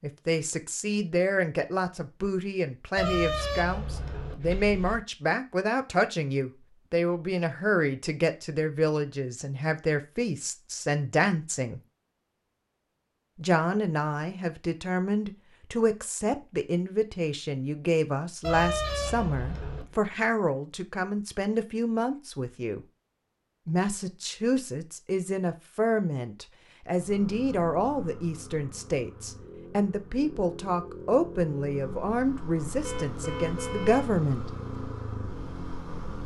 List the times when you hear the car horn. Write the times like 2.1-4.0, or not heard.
3.0-5.0, 18.4-19.9, 32.8-34.1.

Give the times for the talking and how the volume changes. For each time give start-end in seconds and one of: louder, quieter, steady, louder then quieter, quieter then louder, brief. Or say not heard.
0.0-11.8 steady
13.3-22.9 steady
23.6-34.5 steady.